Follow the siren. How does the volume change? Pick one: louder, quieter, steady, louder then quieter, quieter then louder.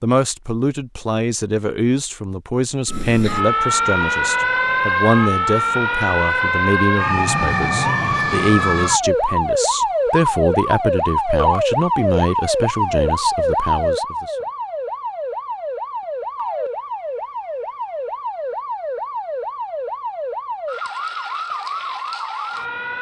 quieter.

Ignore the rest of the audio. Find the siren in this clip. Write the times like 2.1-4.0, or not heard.
2.9-22.9.